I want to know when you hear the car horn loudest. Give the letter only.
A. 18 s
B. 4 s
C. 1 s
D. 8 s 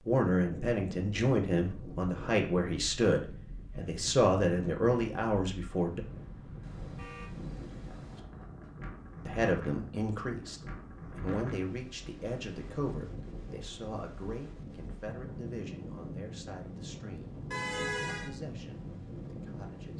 A.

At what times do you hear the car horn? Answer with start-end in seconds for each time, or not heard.
6.6-8.2, 17.5-18.3.